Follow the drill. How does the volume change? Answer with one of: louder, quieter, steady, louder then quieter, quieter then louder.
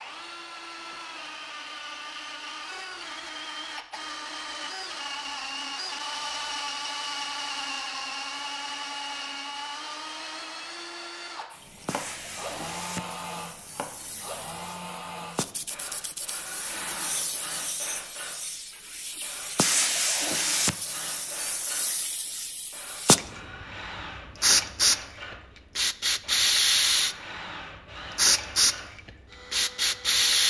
quieter.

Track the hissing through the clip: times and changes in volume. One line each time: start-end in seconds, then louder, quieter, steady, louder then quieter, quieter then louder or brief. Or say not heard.
11.5-27.1 louder
28.1-30.4 brief.